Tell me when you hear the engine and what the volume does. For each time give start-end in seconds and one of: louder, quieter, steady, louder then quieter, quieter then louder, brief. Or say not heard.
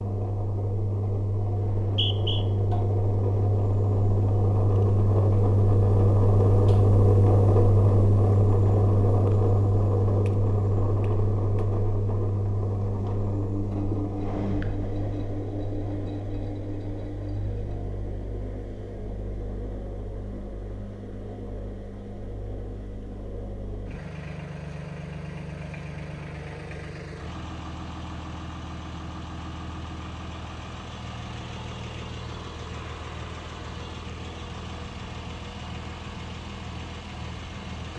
0.0-37.9 quieter.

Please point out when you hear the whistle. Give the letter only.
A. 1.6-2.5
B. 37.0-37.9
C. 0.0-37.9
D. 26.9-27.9
A.